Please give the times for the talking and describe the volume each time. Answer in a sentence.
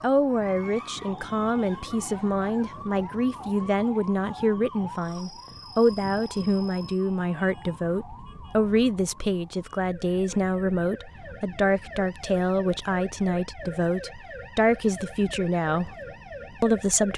The talking can be heard from 0.0 to 15.9 s, at a steady volume; and briefly from 16.6 to 17.1 s.